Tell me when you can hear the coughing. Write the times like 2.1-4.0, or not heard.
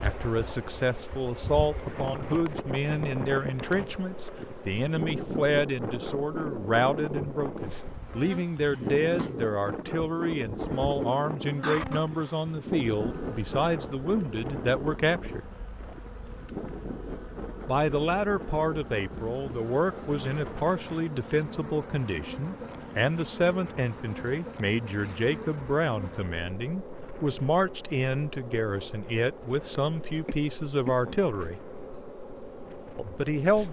8.7-9.3, 11.6-12.4, 30.2-31.2.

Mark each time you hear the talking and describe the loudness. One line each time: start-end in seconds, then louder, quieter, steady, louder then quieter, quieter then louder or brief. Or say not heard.
0.0-15.4 steady
17.6-31.6 steady
33.0-33.6 brief.